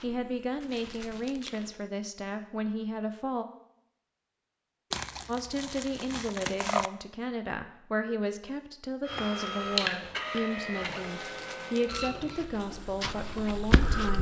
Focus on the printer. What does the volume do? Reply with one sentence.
The volume of the printer goes down.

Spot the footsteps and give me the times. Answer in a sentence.
You can hear the footsteps from 0.0 to 1.9 s and from 12.3 to 14.1 s.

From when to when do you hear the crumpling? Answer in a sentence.
The crumpling can be heard from 0.6 to 1.8 s, from 4.9 to 6.9 s and from 11.1 to 12.4 s.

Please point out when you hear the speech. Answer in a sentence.
The speech can be heard from 0.0 to 3.5 s and from 5.2 to 14.1 s.